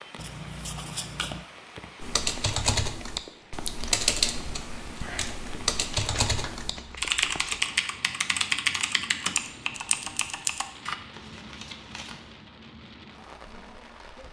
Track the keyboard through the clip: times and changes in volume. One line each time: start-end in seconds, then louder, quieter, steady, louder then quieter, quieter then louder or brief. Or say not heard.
2.0-10.9 steady.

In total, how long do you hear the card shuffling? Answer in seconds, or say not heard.
4 s.